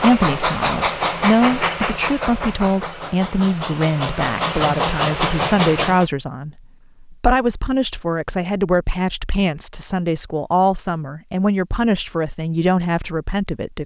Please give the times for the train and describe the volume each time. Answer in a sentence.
The train can be heard from 0.0 to 6.0 s, getting quieter then louder.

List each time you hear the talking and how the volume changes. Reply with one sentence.
The talking can be heard from 0.0 to 13.8 s, at a steady volume.